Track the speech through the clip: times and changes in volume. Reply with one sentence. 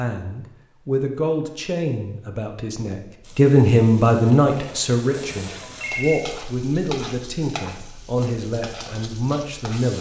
The speech can be heard from 0.0 to 9.9 s, getting louder then quieter.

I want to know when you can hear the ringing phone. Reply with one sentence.
The ringing phone can be heard from 5.1 to 6.2 s.